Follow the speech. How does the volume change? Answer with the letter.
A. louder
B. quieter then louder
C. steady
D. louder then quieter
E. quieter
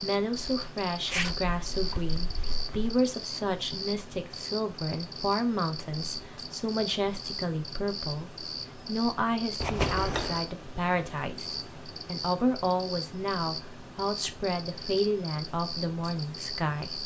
C.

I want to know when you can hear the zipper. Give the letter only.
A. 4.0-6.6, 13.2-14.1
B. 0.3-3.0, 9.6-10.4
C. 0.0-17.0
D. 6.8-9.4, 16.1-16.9
B.